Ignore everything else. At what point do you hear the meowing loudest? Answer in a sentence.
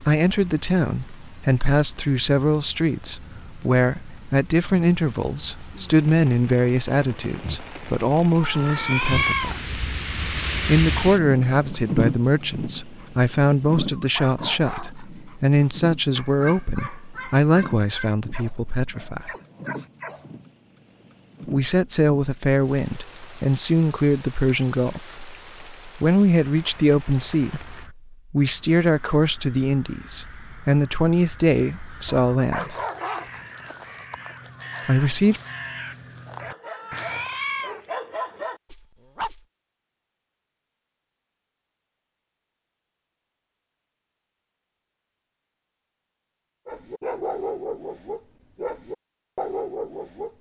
The loudest moment of the meowing is at 9 seconds.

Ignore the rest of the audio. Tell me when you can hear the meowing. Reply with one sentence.
The meowing can be heard from 8.4 to 9.6 s and from 36.6 to 37.8 s.